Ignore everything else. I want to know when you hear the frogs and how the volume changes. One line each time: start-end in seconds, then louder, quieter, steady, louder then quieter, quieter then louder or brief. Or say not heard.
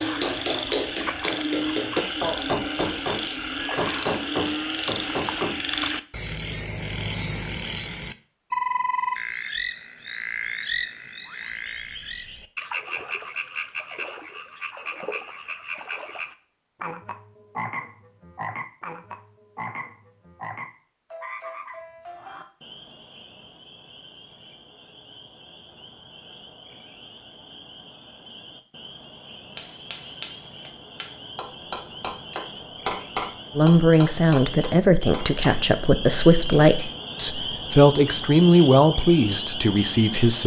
0.0-40.4 quieter then louder.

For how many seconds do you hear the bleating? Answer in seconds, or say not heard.
not heard.